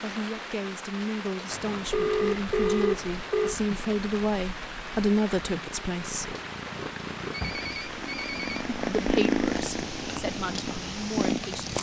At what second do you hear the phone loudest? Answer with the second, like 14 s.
3 s.